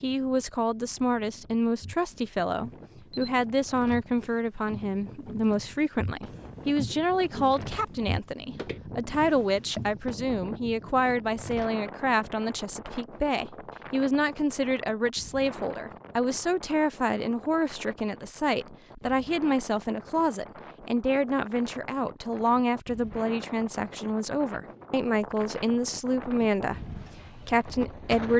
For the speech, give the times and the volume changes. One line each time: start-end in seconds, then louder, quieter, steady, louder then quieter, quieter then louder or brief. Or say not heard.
0.0-28.3 steady.